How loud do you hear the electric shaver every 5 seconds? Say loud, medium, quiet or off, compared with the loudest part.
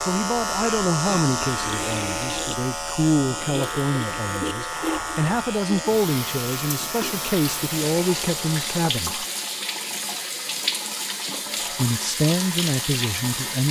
loud, medium, medium.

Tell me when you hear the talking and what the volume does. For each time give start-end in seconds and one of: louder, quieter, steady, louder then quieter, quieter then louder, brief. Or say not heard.
0.0-9.2 steady
11.8-13.6 brief.